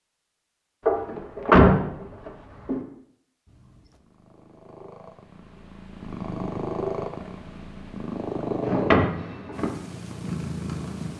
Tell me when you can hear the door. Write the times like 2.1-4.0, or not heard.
0.8-2.8, 8.7-9.7.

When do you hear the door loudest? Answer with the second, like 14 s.
2 s.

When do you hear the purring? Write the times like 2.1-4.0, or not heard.
3.5-11.1.